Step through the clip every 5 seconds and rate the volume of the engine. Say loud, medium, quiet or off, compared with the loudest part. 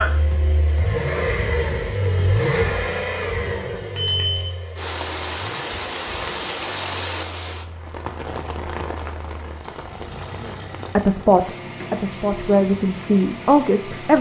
loud, quiet, medium.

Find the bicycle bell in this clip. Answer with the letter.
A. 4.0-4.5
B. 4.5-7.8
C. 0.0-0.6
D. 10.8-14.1
A.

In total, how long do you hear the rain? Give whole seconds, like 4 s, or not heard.
9 s.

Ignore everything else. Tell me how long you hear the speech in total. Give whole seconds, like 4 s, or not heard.
3 s.